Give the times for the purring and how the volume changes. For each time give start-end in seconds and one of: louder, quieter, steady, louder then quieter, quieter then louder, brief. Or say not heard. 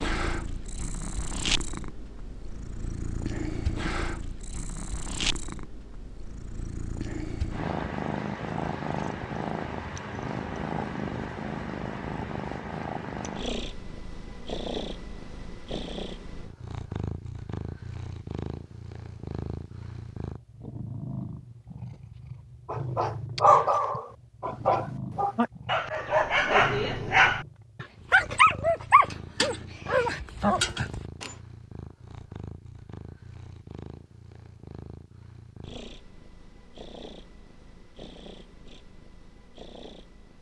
0.0-40.3 quieter.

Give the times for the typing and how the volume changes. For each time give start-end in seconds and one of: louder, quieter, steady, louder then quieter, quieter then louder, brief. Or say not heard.
not heard.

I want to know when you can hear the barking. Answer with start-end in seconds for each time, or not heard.
22.6-31.3.